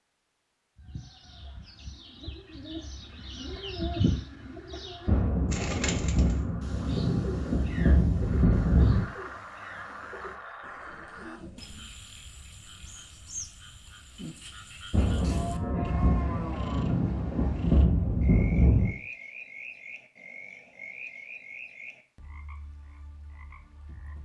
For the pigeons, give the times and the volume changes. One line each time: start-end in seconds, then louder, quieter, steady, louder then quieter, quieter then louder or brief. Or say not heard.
0.8-11.9 louder then quieter.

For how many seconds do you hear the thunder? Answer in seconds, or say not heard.
8 s.